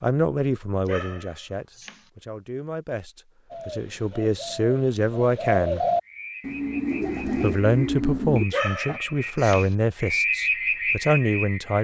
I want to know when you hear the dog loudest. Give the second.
9 s.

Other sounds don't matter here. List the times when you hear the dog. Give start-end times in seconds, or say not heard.
0.8-2.0, 8.5-9.7.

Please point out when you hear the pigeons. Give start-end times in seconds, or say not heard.
3.5-9.0.